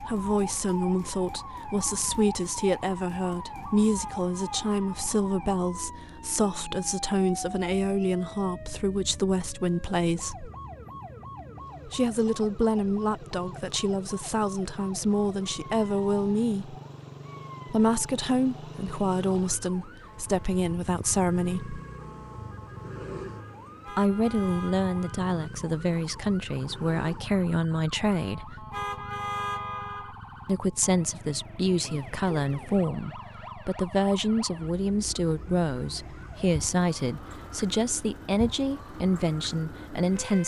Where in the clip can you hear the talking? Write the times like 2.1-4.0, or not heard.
0.0-10.5, 11.8-16.8, 17.6-21.8, 23.9-28.6, 30.4-40.4.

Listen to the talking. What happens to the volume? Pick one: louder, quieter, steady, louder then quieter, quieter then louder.
steady.